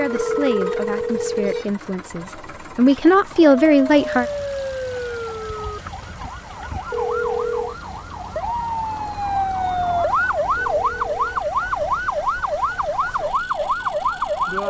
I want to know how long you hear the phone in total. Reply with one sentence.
You can hear the phone for 3 seconds altogether.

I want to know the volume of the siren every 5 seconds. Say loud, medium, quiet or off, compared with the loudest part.
medium, medium, loud.